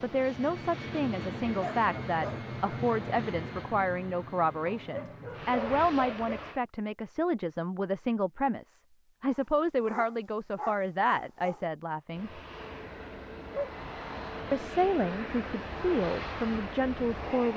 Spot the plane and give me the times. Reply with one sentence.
You can hear the plane from 0.0 to 6.6 s and from 12.1 to 17.5 s.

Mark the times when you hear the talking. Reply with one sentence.
The talking can be heard from 0.0 to 12.4 s and from 14.5 to 17.5 s.